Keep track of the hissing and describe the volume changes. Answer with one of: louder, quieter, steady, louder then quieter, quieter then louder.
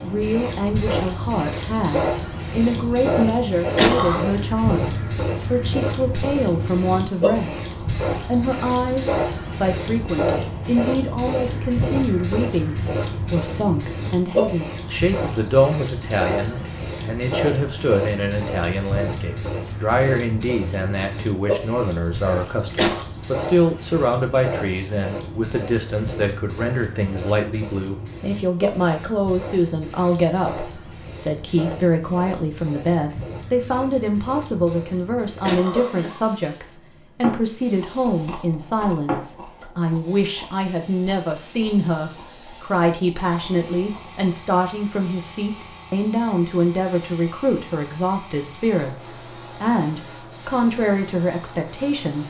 quieter.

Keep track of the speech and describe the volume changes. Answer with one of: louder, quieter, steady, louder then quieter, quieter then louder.
steady.